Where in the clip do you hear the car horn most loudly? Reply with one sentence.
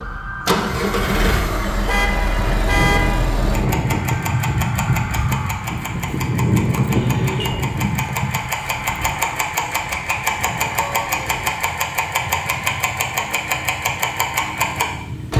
The loudest moment of the car horn is at 3 seconds.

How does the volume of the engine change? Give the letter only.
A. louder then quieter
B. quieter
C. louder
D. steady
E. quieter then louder
D.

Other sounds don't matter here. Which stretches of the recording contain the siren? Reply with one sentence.
You can hear the siren from 0.0 to 11.6 s.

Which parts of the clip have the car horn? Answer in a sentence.
The car horn can be heard from 1.9 to 3.3 s, from 6.9 to 7.5 s and from 10.7 to 11.2 s.